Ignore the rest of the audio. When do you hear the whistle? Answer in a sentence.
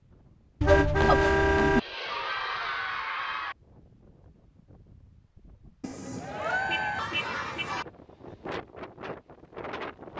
The whistle can't be heard in this clip.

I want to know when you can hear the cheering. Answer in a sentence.
The cheering can be heard from 1.8 to 3.5 s and from 5.8 to 7.8 s.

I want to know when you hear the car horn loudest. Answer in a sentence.
The loudest moment of the car horn is at 1 second.